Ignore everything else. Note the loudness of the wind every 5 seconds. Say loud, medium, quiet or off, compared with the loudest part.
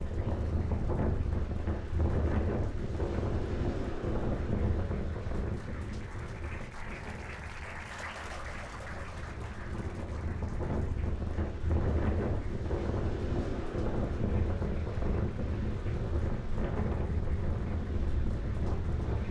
loud, medium, loud, loud.